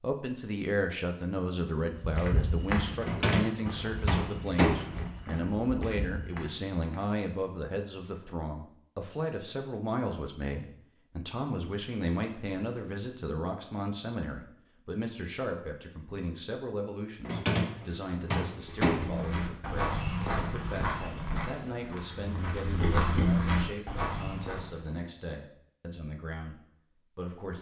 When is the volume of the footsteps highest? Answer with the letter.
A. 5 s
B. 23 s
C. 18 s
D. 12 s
B.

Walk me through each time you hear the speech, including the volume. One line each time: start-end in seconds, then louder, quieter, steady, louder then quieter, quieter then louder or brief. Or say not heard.
0.0-27.5 quieter.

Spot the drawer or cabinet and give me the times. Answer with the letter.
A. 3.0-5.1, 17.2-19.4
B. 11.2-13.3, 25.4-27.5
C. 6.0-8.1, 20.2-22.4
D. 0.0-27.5
A.